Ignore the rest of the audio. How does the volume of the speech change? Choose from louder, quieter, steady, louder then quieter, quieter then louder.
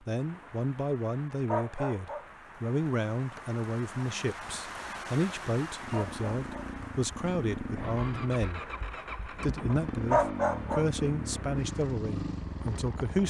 steady.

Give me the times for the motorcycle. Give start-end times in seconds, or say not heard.
5.8-13.2.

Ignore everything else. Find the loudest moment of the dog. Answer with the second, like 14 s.
10 s.